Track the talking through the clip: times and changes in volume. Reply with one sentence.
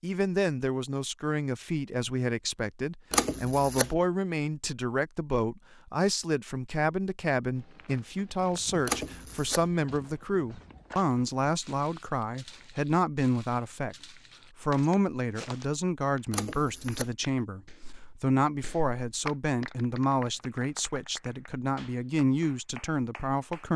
The talking can be heard from 0.0 to 13.9 s, at a steady volume; and from 14.6 to 23.7 s, at a steady volume.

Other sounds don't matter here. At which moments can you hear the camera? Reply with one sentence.
The camera can be heard from 3.1 to 3.9 s, from 8.8 to 9.7 s and from 16.3 to 17.1 s.